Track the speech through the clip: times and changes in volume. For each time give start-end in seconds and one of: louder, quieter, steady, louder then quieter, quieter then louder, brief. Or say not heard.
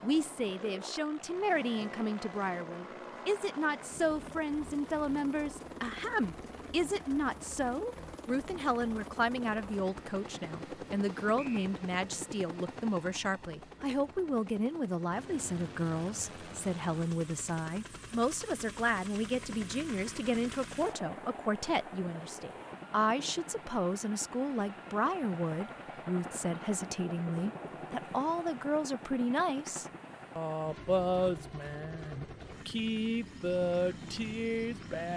0.0-35.1 steady.